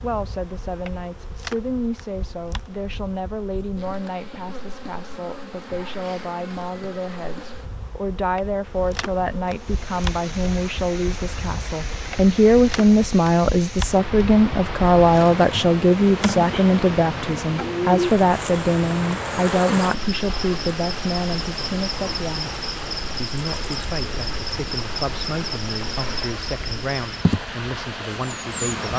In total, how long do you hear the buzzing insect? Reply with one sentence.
You can hear the buzzing insect for 29 seconds altogether.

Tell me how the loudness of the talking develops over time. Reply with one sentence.
The loudness of the talking goes up, then down.